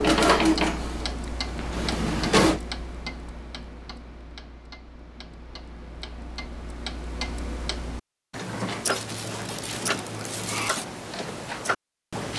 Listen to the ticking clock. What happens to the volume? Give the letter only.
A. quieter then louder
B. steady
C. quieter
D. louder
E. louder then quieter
A.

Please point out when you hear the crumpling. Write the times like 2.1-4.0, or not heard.
8.8-10.8.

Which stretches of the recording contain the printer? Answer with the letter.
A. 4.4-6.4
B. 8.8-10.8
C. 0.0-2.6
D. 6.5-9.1
C.